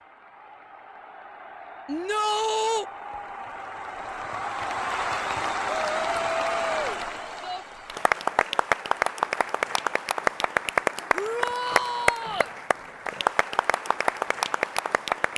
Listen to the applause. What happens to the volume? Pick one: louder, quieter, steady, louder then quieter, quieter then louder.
louder.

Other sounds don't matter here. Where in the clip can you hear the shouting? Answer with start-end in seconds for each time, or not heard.
1.9-2.9, 5.9-7.7, 11.1-12.5.